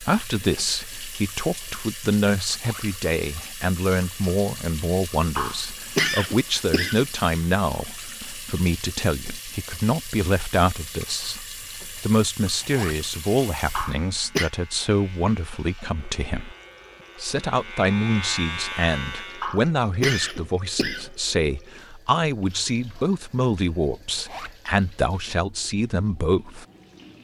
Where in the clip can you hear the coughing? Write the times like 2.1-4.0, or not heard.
5.3-7.0, 13.8-14.5, 19.4-21.1.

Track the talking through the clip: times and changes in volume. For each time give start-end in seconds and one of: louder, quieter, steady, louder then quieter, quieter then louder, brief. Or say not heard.
0.0-16.6 steady
17.2-26.6 steady.